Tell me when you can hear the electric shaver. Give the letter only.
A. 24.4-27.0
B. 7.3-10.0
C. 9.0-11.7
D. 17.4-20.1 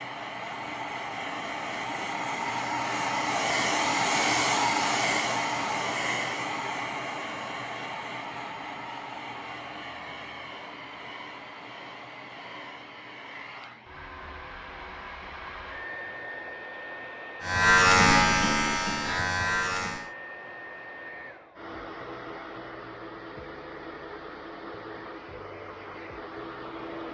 D.